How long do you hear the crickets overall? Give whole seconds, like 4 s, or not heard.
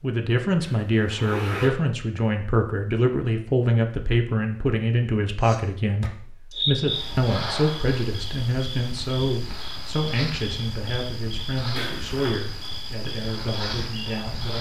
9 s.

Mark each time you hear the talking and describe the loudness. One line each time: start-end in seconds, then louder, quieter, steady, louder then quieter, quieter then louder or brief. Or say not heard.
0.0-14.5 quieter.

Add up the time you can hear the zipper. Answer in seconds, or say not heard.
2 s.